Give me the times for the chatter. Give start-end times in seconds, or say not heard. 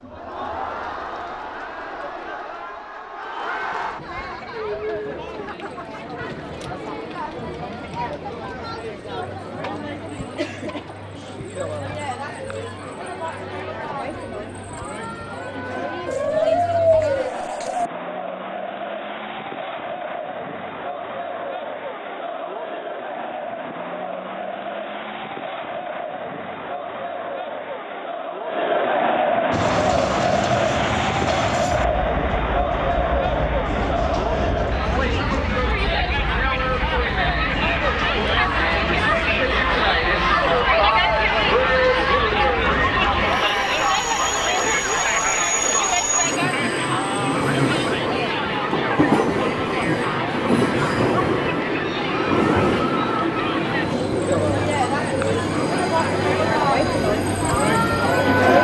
0.0-58.5.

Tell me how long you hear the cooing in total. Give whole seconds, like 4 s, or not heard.
2 s.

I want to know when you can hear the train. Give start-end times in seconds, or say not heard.
29.5-58.5.